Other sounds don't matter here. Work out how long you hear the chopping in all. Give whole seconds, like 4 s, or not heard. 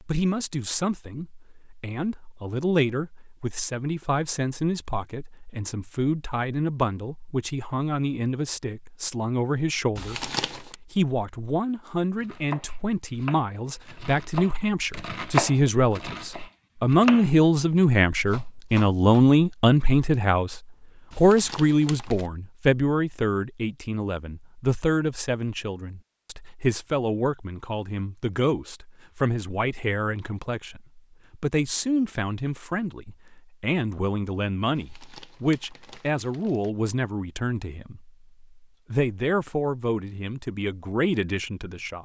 7 s.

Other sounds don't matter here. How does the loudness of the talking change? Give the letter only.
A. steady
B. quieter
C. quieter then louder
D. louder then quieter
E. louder
D.